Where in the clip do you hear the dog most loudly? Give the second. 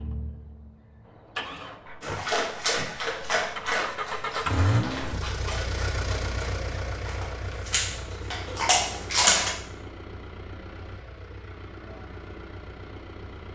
9 s.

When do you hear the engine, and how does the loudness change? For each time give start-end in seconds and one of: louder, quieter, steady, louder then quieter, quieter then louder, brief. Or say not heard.
0.0-13.5 louder then quieter.